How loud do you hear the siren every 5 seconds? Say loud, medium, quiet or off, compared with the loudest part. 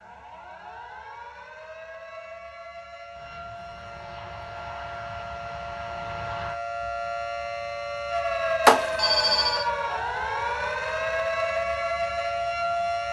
quiet, loud, loud.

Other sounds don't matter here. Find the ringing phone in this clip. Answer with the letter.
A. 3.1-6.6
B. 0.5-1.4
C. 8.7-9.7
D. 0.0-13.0
C.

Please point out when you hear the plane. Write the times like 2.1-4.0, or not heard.
3.1-6.6.